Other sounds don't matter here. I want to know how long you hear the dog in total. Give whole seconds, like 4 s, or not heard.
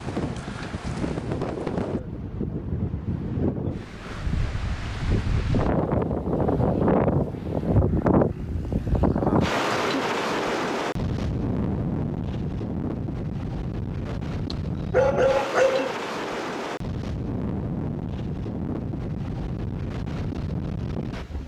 2 s.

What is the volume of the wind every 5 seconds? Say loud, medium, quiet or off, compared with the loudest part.
medium, loud, medium, medium, medium.